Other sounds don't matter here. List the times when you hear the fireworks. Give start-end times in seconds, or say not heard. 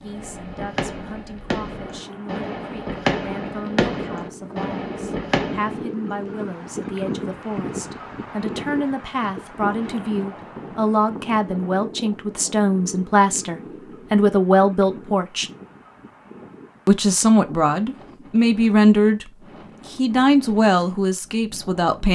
0.1-5.8.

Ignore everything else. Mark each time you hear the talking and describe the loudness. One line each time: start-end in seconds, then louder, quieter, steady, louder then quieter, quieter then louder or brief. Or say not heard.
0.0-15.5 louder
16.9-19.3 brief
19.9-22.1 brief.